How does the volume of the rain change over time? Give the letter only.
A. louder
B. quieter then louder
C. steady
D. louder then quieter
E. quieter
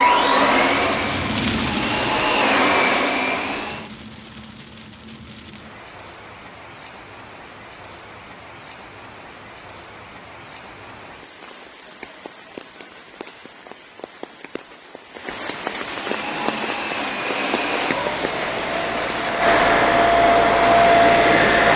B.